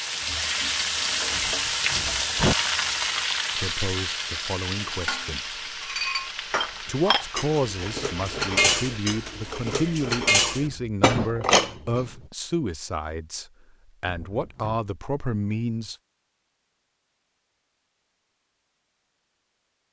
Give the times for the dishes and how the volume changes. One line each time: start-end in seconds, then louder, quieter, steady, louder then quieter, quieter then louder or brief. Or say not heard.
5.0-12.1 louder.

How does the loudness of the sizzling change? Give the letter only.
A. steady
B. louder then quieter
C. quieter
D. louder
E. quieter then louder
C.